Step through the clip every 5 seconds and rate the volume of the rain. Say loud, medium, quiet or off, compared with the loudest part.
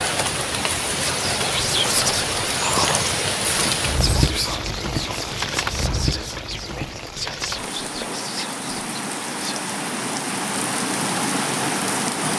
loud, medium, loud.